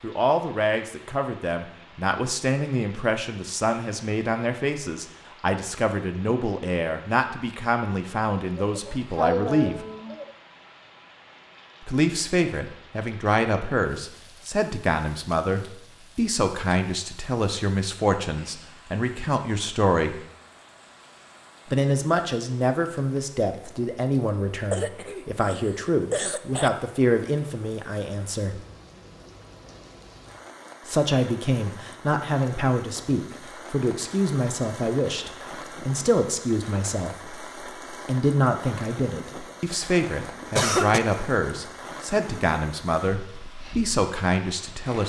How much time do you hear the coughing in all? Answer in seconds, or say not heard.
5 s.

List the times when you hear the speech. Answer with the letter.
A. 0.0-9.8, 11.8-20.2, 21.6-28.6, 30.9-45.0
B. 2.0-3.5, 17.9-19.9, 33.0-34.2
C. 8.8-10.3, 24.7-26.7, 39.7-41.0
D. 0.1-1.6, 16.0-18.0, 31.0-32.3
A.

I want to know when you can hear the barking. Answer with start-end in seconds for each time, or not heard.
not heard.